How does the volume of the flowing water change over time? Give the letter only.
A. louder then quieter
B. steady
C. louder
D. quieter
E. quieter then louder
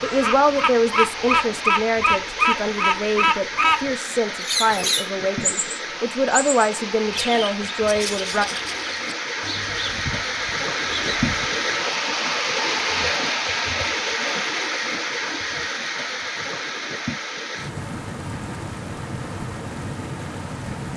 A.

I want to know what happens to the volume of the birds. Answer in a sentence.
The volume of the birds goes down.